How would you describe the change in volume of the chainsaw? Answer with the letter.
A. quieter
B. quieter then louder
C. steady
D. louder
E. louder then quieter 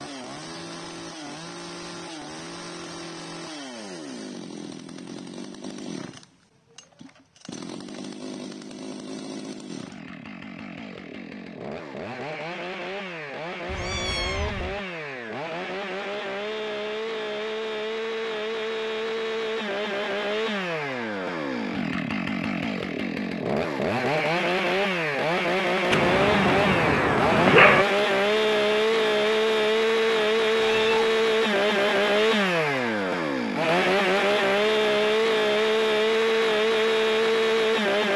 D.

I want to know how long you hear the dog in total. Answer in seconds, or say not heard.
2 s.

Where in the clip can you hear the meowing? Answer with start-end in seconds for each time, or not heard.
13.7-14.8, 30.6-31.1.